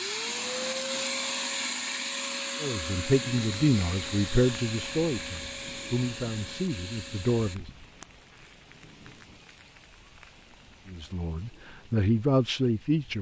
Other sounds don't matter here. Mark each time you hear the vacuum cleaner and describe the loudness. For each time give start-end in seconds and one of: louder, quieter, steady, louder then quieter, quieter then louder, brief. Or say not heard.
0.0-7.6 quieter.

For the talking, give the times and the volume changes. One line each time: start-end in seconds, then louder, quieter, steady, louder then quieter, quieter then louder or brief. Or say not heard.
2.6-7.7 quieter
10.8-13.1 brief.